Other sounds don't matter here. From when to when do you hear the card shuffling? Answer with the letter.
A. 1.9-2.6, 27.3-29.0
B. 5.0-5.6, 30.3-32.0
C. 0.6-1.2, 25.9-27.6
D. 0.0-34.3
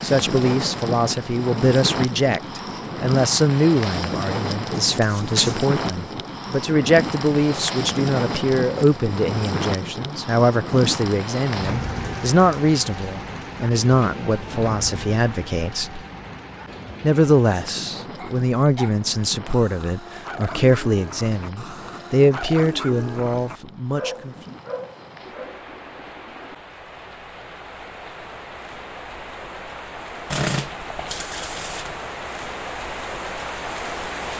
B.